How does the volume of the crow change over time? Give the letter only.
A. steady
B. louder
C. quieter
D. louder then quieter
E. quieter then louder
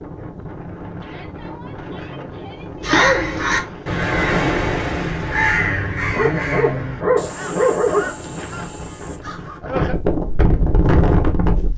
C.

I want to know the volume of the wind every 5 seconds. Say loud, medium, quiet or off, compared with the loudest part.
quiet, medium, loud.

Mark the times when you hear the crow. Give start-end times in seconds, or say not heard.
2.8-9.6.